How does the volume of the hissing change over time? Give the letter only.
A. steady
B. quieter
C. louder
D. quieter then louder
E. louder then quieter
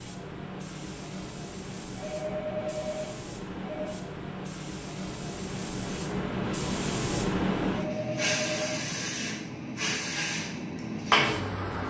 C.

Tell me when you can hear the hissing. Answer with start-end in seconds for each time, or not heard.
0.0-11.8.